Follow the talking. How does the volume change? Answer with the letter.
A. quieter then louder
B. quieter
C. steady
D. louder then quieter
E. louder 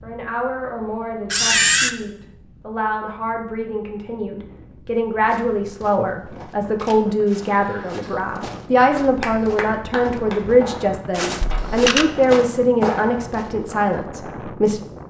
E.